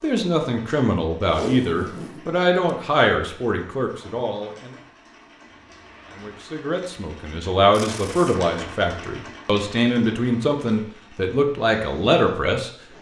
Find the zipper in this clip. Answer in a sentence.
You can hear the zipper from 5.5 to 6.5 s.